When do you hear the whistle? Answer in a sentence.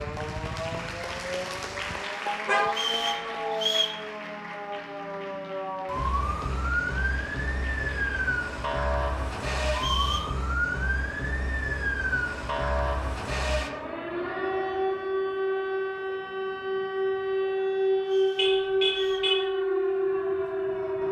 You can hear the whistle from 2.7 to 4.0 s, from 9.8 to 10.3 s and from 18.0 to 19.4 s.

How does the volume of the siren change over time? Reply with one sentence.
The loudness of the siren goes up.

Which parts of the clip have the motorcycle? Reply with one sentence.
The motorcycle can be heard from 0.0 to 2.0 s.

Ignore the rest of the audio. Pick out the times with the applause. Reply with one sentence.
The applause can be heard from 0.0 to 8.3 s.